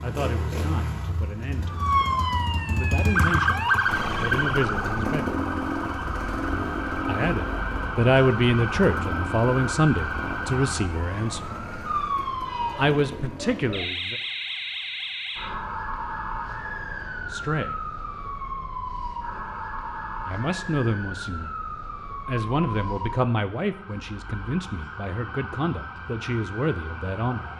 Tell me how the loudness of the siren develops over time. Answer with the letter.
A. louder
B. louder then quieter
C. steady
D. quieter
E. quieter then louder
D.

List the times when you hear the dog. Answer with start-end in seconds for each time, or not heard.
not heard.